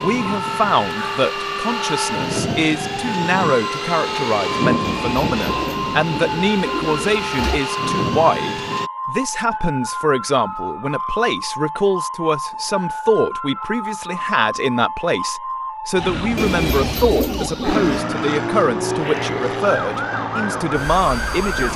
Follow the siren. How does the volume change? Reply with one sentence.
The volume of the siren stays about the same.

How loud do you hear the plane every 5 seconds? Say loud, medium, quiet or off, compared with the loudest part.
loud, loud, off, loud, loud.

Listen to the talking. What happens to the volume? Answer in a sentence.
The loudness of the talking stays about the same.